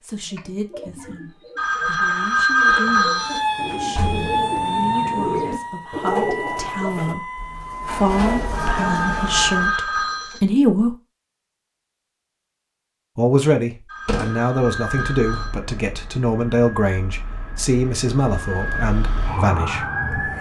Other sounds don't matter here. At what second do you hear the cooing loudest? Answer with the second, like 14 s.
6 s.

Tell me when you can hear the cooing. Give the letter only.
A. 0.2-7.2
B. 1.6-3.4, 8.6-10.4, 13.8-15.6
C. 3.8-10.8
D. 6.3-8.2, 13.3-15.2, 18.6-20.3
A.